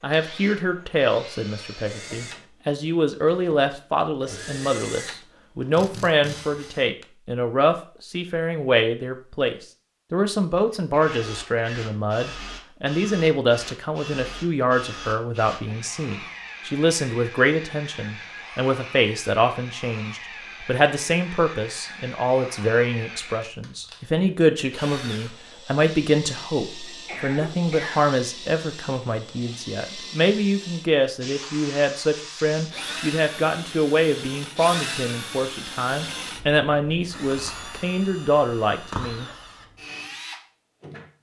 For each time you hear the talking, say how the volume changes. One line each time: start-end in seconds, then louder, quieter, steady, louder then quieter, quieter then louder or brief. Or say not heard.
0.0-39.3 steady.